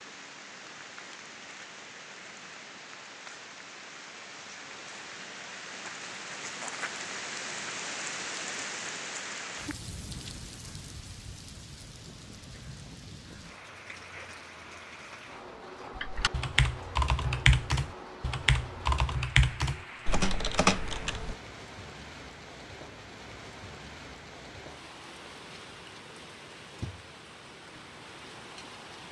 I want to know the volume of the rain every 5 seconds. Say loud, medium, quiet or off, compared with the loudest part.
medium, loud, medium, medium, medium, medium.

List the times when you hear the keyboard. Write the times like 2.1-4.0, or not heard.
15.9-21.4.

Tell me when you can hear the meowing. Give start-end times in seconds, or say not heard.
not heard.